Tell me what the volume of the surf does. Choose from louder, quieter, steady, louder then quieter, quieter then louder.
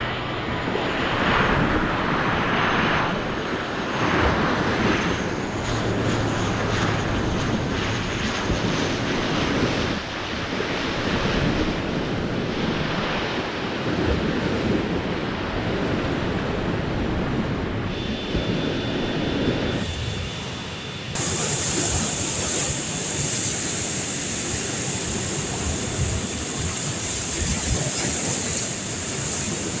steady.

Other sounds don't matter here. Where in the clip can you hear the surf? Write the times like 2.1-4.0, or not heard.
0.0-29.7.